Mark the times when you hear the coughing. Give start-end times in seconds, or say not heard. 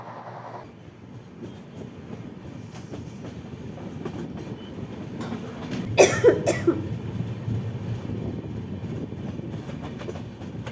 5.2-6.8.